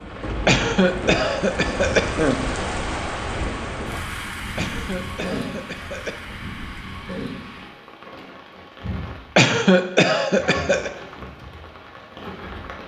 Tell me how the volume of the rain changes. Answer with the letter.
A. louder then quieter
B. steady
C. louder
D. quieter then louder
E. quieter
E.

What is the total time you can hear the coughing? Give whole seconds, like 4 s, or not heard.
5 s.